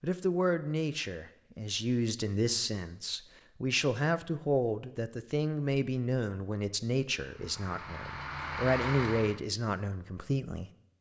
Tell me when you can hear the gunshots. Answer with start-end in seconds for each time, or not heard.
not heard.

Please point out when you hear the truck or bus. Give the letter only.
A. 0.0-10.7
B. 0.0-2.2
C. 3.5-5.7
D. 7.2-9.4
D.